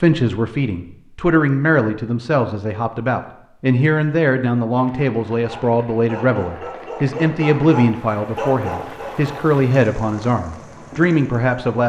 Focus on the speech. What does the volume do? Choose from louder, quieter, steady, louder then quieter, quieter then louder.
steady.